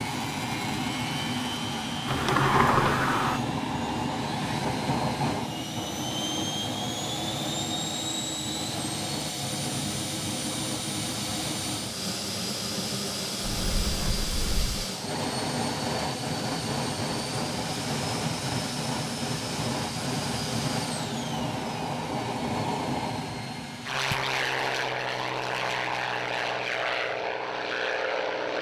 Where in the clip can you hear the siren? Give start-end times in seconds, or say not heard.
not heard.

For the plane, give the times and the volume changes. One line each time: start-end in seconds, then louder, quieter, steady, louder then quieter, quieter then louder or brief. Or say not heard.
0.0-28.5 steady.